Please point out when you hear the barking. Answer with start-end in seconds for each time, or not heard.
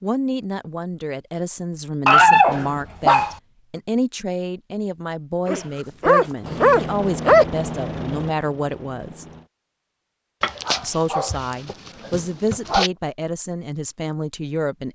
2.0-3.4, 5.5-7.5, 10.4-12.9.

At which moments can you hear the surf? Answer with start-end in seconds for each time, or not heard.
not heard.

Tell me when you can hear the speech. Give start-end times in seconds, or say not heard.
0.0-9.2, 10.8-14.8.